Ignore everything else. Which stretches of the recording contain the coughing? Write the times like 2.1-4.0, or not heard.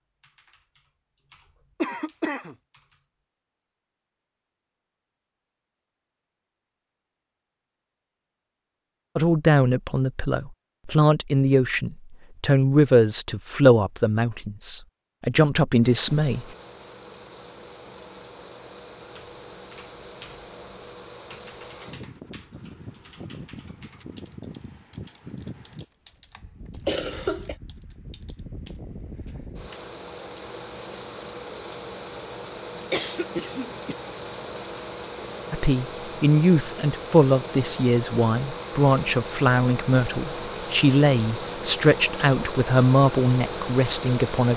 1.8-2.5, 26.9-27.6, 32.9-34.0.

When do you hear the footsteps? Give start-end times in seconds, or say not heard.
not heard.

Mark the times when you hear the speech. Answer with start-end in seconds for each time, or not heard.
9.2-16.4, 35.5-44.5.